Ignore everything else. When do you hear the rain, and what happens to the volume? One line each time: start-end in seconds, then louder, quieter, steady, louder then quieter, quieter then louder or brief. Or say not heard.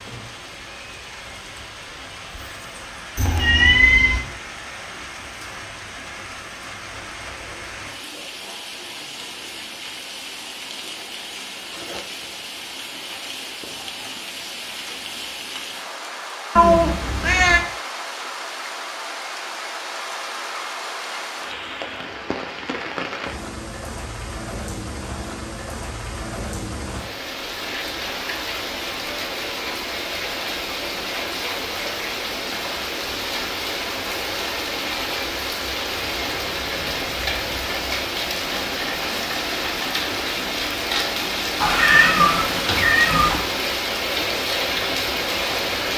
0.0-45.9 louder.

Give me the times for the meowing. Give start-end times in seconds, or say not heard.
3.1-4.2, 16.6-17.6, 41.6-43.4.